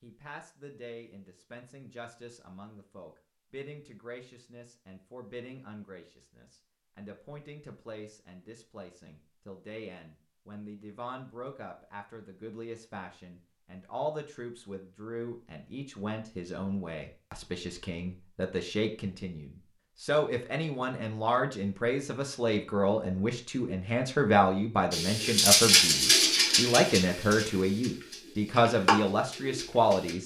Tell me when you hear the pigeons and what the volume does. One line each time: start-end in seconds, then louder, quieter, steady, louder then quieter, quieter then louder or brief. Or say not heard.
24.9-30.1 quieter then louder.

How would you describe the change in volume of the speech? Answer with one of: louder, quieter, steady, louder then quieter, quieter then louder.
louder.